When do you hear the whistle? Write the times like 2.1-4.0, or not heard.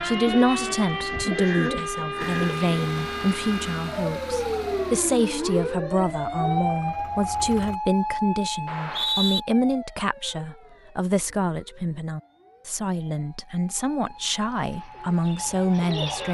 8.7-9.4.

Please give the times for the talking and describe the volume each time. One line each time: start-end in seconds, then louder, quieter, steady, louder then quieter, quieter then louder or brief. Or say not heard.
0.0-16.3 steady.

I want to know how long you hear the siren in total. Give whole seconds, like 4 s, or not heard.
16 s.